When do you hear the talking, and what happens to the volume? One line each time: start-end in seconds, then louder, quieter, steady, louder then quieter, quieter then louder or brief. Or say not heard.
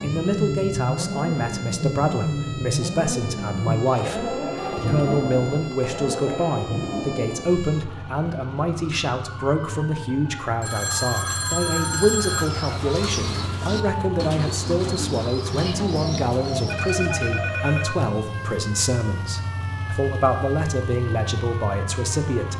0.0-22.5 steady.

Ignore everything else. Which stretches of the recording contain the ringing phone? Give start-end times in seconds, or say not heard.
4.5-5.3, 10.6-12.5, 16.6-18.0.